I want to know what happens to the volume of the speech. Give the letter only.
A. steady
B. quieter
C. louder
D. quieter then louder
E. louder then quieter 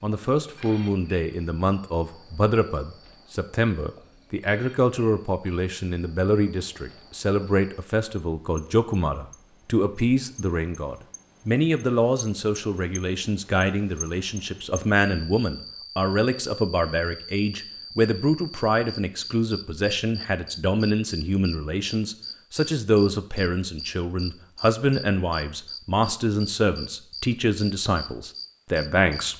A.